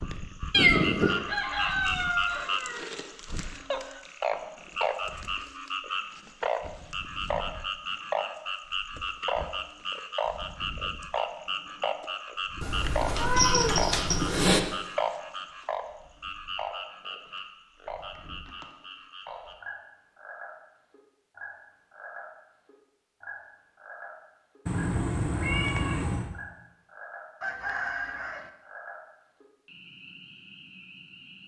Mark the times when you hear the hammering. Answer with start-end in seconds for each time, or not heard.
not heard.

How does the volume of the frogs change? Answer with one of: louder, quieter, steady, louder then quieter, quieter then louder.
quieter.